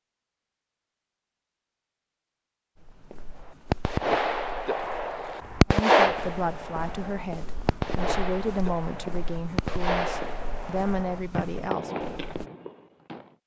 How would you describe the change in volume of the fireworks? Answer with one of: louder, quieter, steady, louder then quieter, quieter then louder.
quieter.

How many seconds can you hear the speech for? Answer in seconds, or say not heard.
6 s.